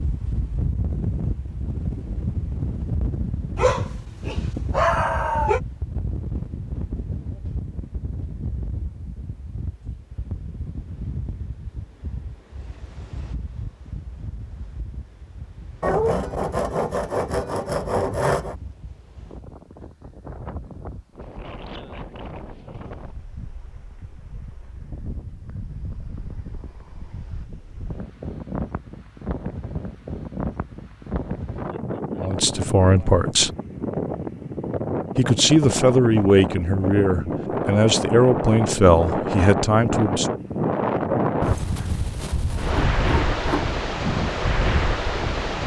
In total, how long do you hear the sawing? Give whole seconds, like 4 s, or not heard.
5 s.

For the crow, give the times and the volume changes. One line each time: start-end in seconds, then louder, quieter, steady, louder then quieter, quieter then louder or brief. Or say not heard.
not heard.